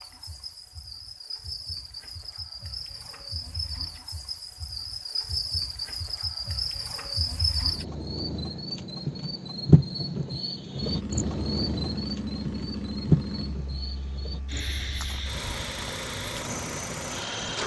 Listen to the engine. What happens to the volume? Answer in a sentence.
The volume of the engine goes down, then up.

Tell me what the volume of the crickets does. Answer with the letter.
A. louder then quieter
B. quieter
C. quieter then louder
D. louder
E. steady
A.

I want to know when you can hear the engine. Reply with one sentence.
You can hear the engine from 10.8 to 17.6 s.